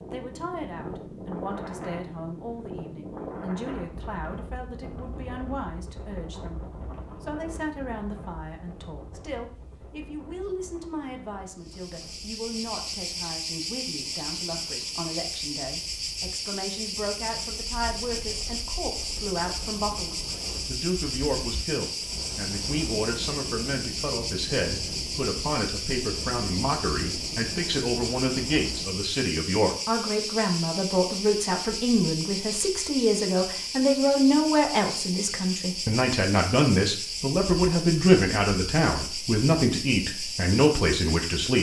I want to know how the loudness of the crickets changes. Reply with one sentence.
The volume of the crickets stays about the same.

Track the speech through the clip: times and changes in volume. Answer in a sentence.
You can hear the speech from 0.1 to 41.5 s, getting louder.